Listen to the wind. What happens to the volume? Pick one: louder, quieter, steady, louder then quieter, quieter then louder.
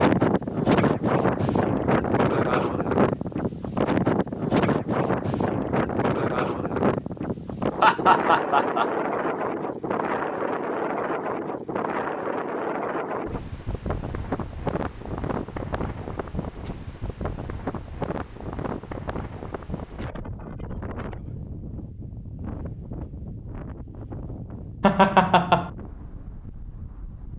quieter.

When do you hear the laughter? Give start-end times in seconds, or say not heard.
7.8-9.3, 24.8-25.7.